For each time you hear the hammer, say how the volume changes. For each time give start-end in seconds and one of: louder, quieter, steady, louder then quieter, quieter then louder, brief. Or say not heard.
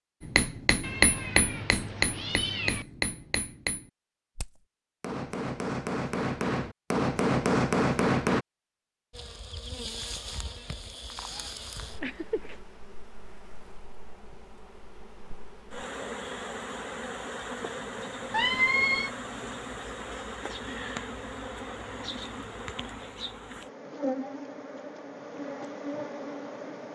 0.2-8.4 quieter then louder.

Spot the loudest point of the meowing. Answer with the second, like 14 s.
19 s.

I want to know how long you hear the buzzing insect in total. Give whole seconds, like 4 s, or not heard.
18 s.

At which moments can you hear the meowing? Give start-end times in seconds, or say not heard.
0.8-2.9, 11.3-12.6, 18.3-19.1.